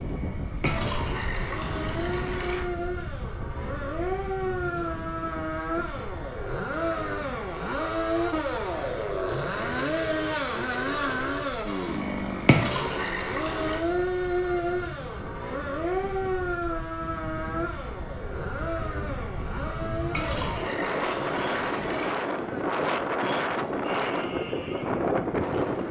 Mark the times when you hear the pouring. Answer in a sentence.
You can hear the pouring from 0.6 to 2.6 s, from 12.4 to 13.8 s and from 20.1 to 22.1 s.